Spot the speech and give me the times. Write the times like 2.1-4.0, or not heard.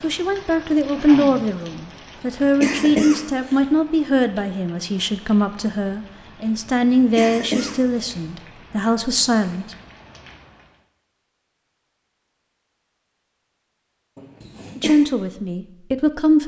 0.0-9.8, 14.8-16.4.